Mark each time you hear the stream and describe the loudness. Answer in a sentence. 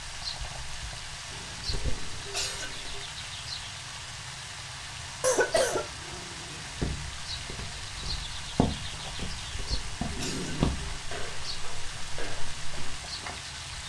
You can hear the stream from 0.0 to 13.8 s, at a steady volume.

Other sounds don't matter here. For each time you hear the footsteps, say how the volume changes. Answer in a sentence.
You can hear the footsteps from 6.8 to 13.3 s, getting louder then quieter.